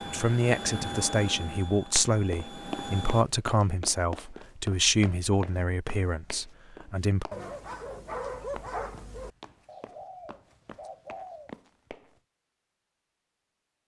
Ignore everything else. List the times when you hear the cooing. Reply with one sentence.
You can hear the cooing from 9.7 to 11.5 s.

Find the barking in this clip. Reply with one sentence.
You can hear the barking from 7.3 to 9.3 s.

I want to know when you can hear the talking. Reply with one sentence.
The talking can be heard from 0.1 to 7.2 s.